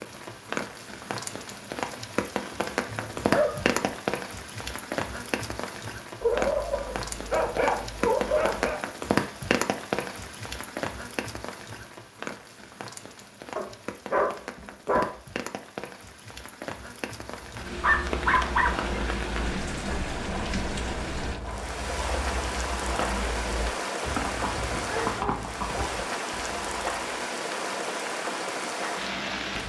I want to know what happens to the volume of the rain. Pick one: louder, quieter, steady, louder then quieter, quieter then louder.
quieter then louder.